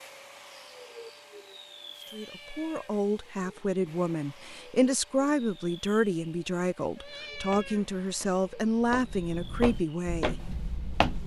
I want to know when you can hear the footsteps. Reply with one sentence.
You can hear the footsteps from 7.3 to 11.2 s.